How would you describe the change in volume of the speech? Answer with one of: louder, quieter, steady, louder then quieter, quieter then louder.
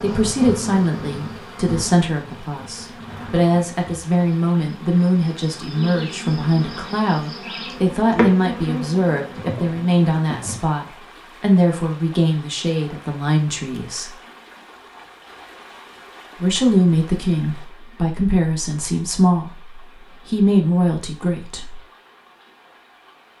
steady.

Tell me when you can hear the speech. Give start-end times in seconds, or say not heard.
0.0-14.2, 16.4-21.8.